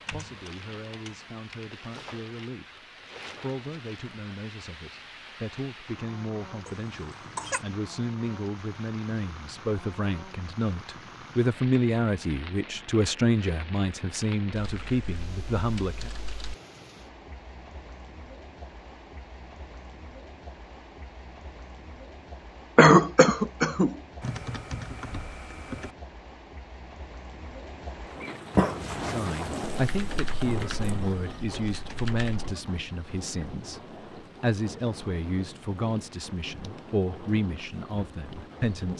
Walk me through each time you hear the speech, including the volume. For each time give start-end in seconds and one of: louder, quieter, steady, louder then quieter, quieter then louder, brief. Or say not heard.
0.1-16.1 louder
29.0-38.9 steady.